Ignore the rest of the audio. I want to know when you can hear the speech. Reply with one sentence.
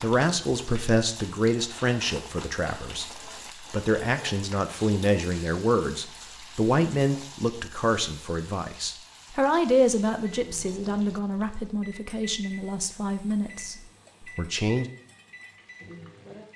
You can hear the speech from 0.0 to 14.9 s.